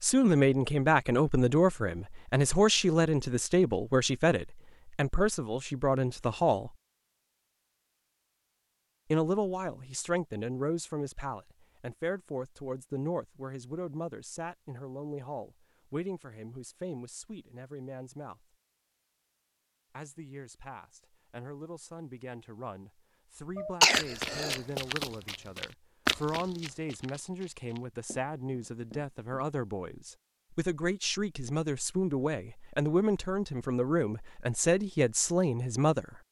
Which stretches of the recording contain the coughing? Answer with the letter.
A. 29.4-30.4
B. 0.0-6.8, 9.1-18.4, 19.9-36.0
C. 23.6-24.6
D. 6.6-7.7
C.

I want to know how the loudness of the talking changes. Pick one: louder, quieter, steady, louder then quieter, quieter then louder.
quieter then louder.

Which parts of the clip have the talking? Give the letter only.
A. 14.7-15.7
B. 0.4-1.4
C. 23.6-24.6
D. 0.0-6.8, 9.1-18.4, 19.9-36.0
D.